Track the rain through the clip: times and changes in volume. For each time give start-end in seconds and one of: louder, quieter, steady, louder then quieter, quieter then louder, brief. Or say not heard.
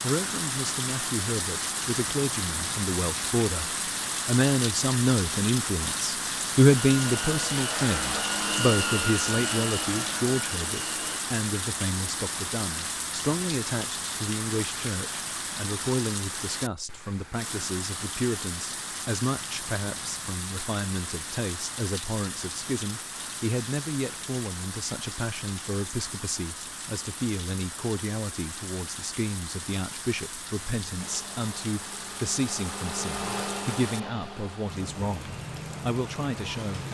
0.0-36.8 quieter.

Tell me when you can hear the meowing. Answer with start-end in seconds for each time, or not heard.
not heard.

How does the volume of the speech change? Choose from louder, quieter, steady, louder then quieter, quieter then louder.
quieter.